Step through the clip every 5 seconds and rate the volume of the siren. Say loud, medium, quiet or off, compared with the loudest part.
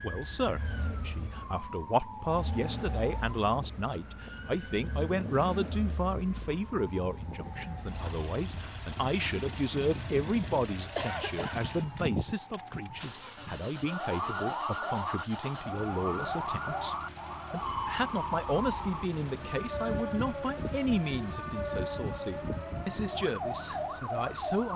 medium, medium, loud, loud, loud.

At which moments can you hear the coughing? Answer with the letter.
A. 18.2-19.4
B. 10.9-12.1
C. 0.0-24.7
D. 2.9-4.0
B.